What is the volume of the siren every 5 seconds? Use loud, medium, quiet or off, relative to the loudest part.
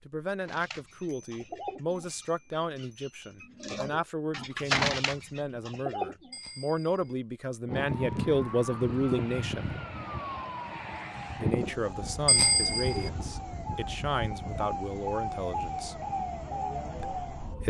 off, loud, loud, loud.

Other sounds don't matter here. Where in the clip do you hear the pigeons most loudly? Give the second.
5 s.